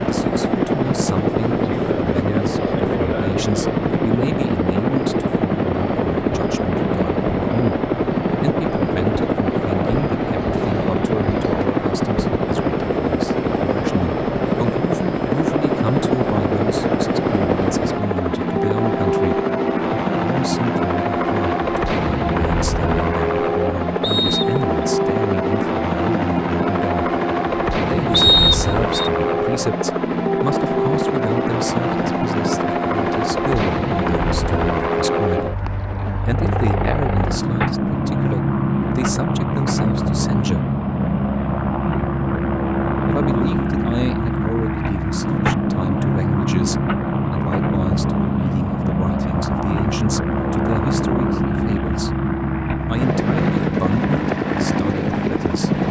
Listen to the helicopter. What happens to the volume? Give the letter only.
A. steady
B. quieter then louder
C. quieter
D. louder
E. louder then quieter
A.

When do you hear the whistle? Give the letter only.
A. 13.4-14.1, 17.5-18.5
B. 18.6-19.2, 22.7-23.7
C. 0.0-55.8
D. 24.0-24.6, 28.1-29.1
D.